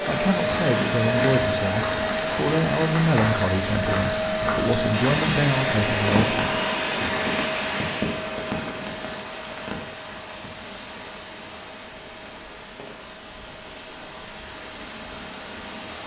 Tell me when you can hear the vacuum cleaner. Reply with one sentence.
The vacuum cleaner can be heard from 0.0 to 16.0 s.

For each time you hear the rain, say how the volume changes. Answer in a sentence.
You can hear the rain from 0.0 to 16.0 s, getting quieter.